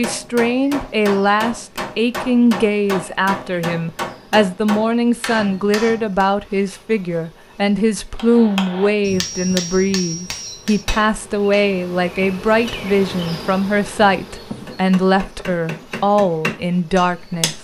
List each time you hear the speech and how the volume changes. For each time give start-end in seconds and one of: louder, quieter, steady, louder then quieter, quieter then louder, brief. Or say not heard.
0.0-17.5 steady.